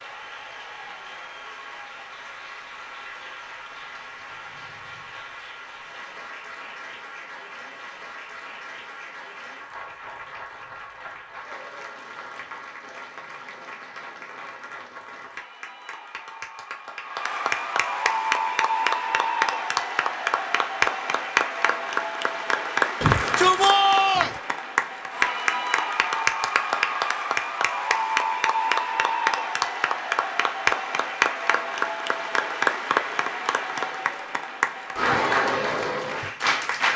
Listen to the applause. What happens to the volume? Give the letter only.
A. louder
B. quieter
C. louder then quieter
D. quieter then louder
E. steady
A.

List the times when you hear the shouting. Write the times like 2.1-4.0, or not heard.
23.0-24.4.